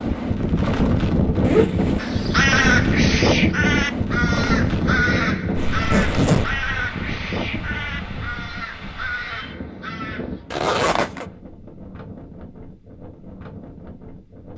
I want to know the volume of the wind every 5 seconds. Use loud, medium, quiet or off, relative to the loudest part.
loud, medium, quiet.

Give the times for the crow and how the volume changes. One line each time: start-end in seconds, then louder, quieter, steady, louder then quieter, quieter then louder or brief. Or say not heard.
1.9-10.4 quieter.